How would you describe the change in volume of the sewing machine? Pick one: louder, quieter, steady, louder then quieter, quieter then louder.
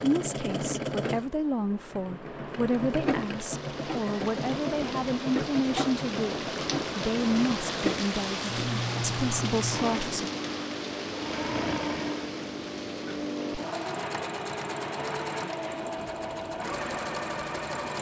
steady.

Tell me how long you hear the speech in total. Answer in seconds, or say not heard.
10 s.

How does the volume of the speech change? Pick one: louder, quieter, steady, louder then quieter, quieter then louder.
steady.